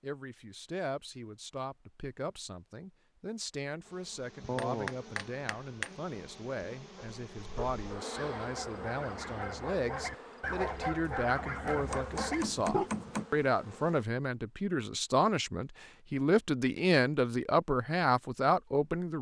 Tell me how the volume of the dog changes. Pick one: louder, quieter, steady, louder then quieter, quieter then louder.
louder.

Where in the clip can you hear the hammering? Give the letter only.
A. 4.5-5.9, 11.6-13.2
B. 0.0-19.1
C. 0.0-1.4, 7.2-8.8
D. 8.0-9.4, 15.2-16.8
A.